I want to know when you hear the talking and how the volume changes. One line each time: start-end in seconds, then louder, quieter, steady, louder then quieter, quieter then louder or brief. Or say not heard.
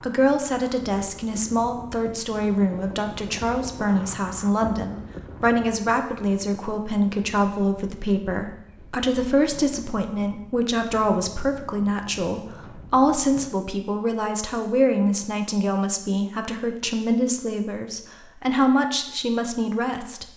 0.0-20.2 steady.